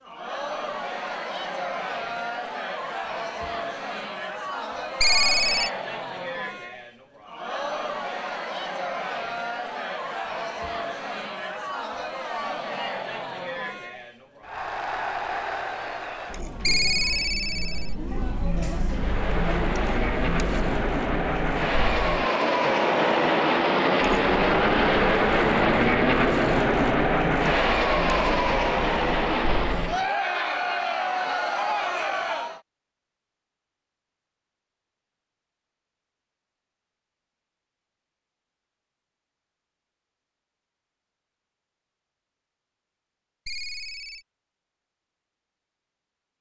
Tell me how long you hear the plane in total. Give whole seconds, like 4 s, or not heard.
11 s.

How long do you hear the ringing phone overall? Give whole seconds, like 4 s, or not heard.
3 s.